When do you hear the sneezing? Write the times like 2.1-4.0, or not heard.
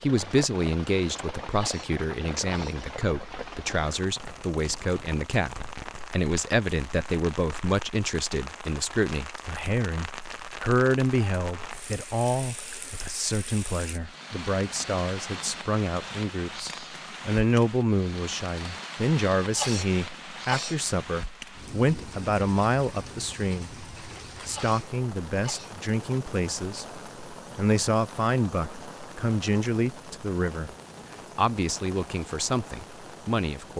1.4-2.8, 19.4-20.8, 24.4-25.8.